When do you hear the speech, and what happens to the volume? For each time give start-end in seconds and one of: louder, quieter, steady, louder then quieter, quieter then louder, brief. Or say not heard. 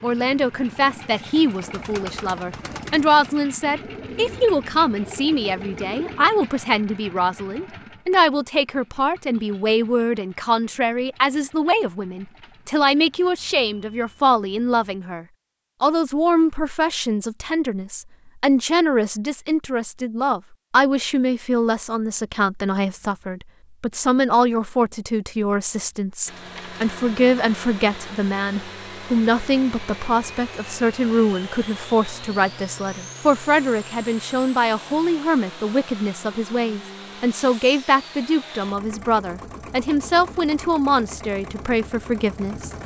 0.0-42.7 steady.